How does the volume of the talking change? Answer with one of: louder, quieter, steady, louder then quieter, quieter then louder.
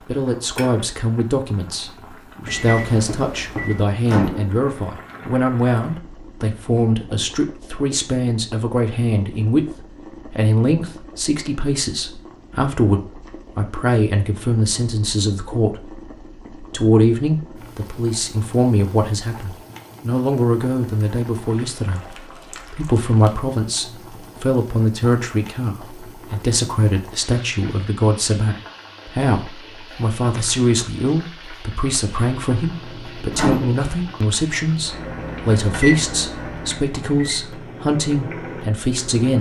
steady.